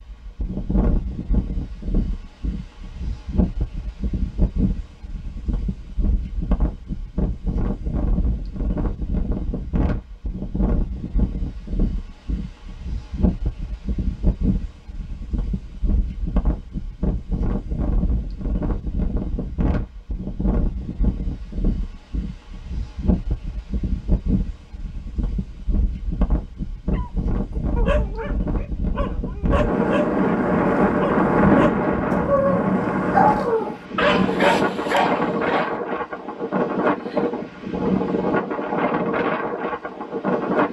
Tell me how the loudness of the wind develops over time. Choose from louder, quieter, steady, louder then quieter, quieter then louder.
louder.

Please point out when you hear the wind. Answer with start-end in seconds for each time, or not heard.
0.0-40.6.